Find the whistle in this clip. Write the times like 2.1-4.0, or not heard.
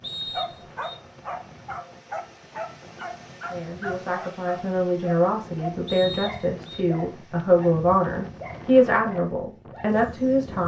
0.0-1.0, 5.8-6.8.